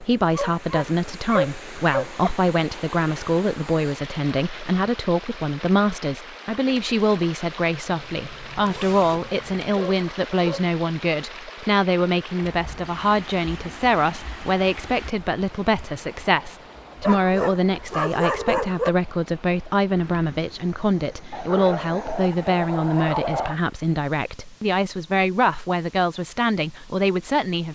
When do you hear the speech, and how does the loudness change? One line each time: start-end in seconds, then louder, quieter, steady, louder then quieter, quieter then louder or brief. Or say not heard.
0.0-27.7 steady.